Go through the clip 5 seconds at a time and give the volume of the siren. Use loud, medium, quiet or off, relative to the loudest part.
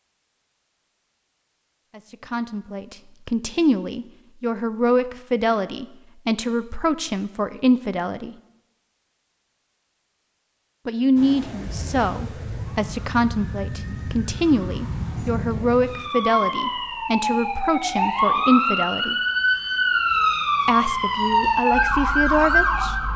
off, off, quiet, loud, loud.